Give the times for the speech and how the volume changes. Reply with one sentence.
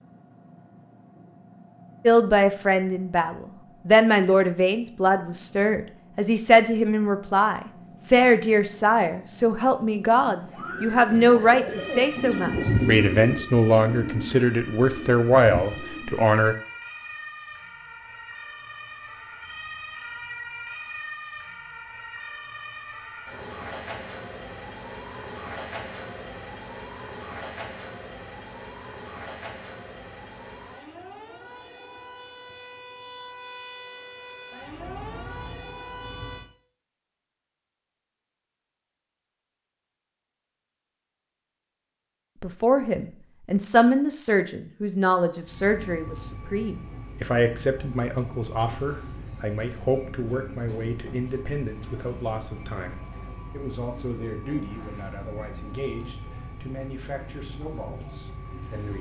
You can hear the speech from 2.0 to 16.6 s, at a steady volume; and from 42.4 to 58.9 s, getting quieter.